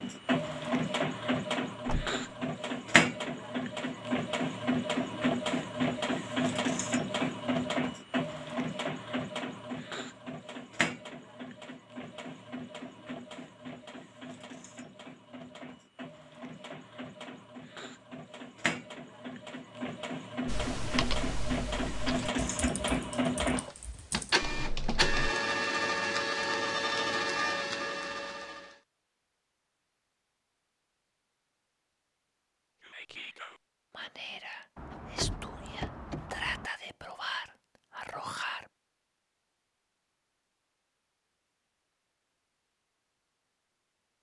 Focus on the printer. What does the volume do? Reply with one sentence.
The loudness of the printer goes down, then up.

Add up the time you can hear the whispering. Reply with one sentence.
The whispering can be heard for 6 seconds in total.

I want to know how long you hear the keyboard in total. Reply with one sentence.
You can hear the keyboard for 5 seconds altogether.